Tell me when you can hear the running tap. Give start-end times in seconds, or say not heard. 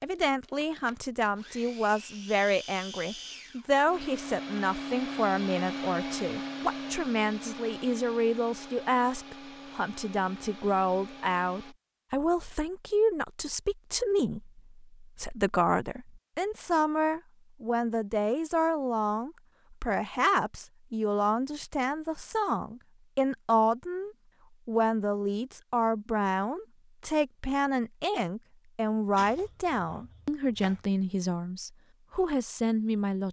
not heard.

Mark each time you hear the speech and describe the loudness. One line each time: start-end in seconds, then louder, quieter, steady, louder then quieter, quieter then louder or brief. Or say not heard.
0.0-33.2 steady.